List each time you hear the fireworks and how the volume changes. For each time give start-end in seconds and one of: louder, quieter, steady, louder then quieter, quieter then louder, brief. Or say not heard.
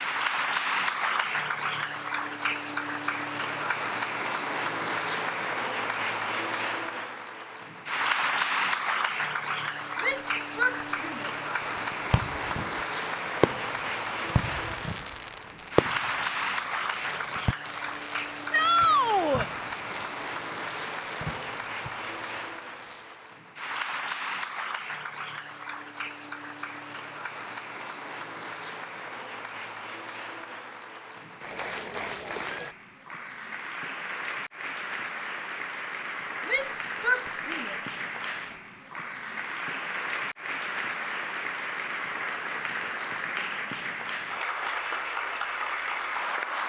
11.8-23.3 quieter.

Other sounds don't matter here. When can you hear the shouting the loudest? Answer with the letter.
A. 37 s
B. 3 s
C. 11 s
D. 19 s
D.